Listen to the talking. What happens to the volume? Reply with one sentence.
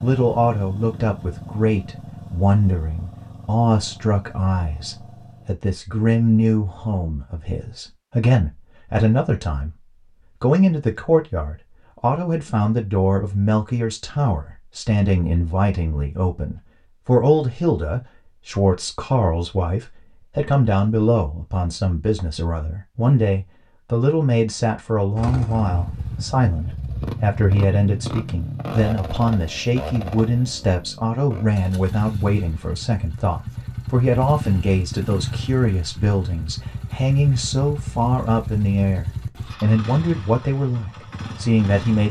The volume of the talking stays about the same.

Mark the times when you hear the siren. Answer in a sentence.
You can't hear the siren here.